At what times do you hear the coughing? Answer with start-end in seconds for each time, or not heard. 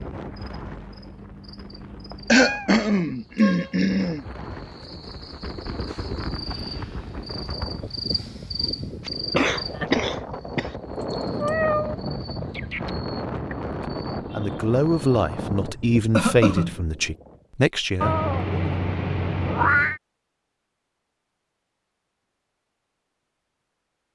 2.3-4.2, 9.1-10.7, 16.1-16.8.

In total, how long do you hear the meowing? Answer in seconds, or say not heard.
4 s.